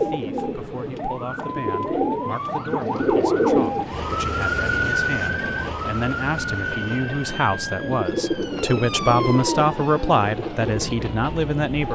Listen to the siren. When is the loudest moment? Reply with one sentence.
The loudest moment of the siren is at 5 seconds.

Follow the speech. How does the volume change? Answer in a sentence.
The loudness of the speech goes up.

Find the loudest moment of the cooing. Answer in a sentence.
The volume of the cooing peaks at 3 seconds.